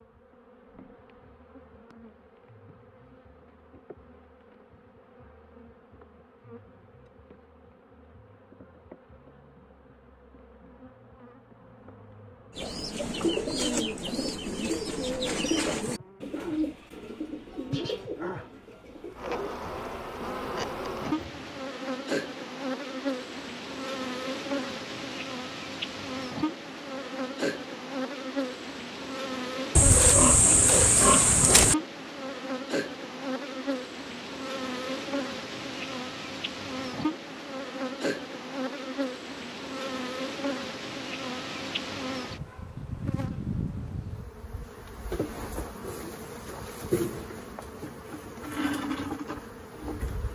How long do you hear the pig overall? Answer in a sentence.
The pig can be heard for 2 seconds in total.